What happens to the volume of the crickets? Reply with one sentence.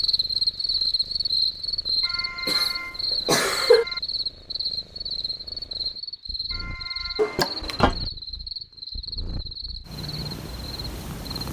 The loudness of the crickets goes down.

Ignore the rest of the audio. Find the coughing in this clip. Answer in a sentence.
The coughing can be heard from 2.5 to 3.9 s and from 7.2 to 8.0 s.